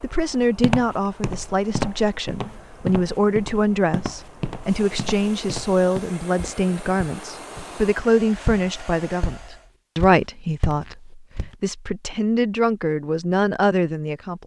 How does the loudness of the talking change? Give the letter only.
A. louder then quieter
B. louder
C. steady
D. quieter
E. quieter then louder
C.